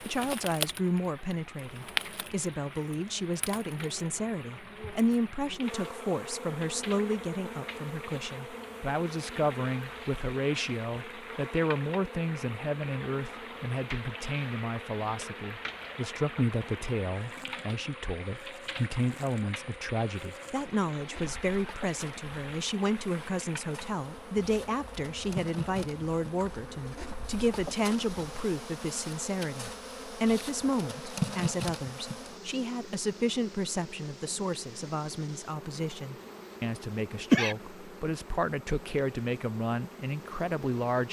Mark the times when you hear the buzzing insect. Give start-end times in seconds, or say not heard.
0.0-41.0.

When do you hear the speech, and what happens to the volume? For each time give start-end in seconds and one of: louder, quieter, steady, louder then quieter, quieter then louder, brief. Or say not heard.
0.0-41.0 steady.